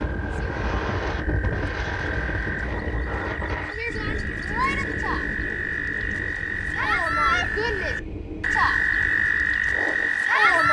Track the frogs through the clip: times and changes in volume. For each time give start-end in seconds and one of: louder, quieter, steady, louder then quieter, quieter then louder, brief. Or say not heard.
0.0-10.6 louder.